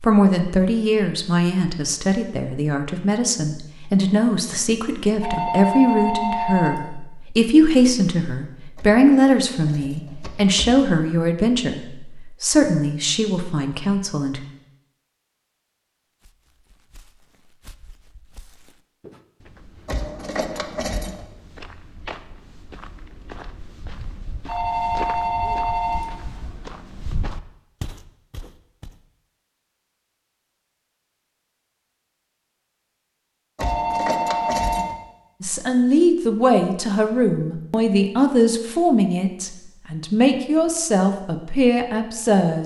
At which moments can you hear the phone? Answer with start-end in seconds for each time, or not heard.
5.2-6.8, 24.4-26.1, 33.6-34.9.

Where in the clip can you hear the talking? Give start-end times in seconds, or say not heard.
0.0-11.8, 12.4-14.4, 35.4-42.6.